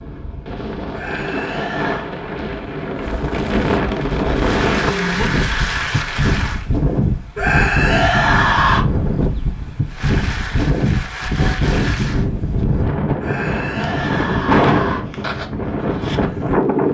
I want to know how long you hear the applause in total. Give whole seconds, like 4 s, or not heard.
5 s.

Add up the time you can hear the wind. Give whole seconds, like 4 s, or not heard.
17 s.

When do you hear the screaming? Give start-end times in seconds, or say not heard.
0.9-2.0, 7.3-8.8, 13.2-15.0.